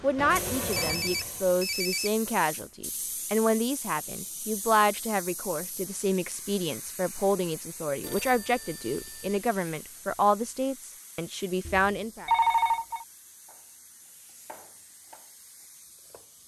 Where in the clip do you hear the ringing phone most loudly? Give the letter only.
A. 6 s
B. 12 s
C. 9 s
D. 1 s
B.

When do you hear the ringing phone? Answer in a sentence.
The ringing phone can be heard from 0.1 to 2.1 s, from 8.0 to 9.4 s and from 11.7 to 13.1 s.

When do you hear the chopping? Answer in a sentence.
You can hear the chopping from 13.4 to 16.4 s.